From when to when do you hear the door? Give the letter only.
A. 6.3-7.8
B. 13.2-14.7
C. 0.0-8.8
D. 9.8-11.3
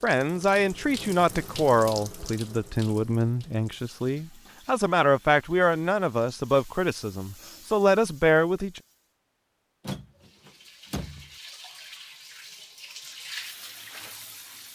D.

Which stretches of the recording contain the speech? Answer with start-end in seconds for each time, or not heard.
0.0-8.8.